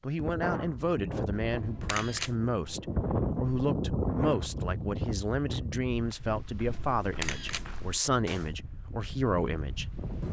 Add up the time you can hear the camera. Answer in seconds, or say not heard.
2 s.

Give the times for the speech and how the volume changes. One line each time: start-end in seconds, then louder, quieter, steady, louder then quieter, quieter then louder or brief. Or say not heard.
0.0-9.8 steady.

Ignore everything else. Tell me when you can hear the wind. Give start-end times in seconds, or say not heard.
0.0-10.2.